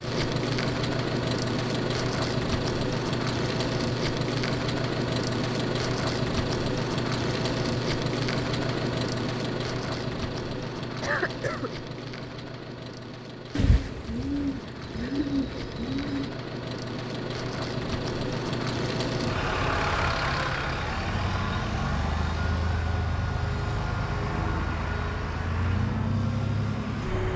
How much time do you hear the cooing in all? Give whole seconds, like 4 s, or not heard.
3 s.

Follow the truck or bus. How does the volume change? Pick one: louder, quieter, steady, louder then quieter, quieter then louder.
quieter then louder.